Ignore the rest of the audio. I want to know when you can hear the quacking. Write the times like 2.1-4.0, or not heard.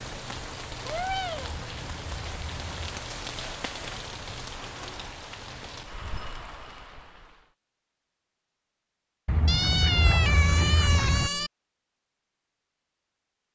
1.5-3.0, 9.2-11.3.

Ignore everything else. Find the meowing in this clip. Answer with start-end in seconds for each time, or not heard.
0.8-1.6, 9.4-11.5.